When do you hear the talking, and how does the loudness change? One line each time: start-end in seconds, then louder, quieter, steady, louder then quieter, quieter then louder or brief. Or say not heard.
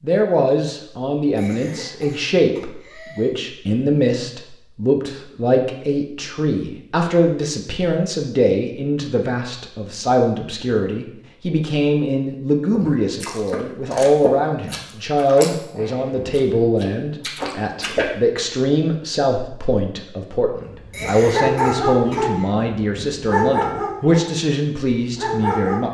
0.0-25.9 steady.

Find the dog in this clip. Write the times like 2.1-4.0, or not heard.
20.6-25.9.